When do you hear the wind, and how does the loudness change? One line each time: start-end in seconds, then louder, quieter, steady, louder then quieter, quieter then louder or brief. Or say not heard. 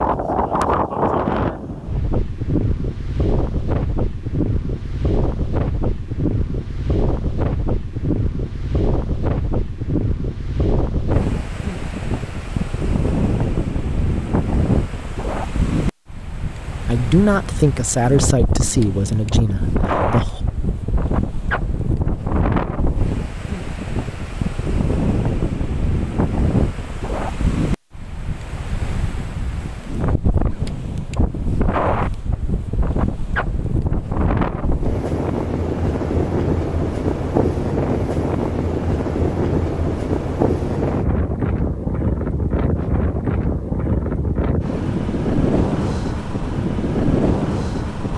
0.0-48.1 steady.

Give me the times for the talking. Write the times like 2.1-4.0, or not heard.
16.9-20.4.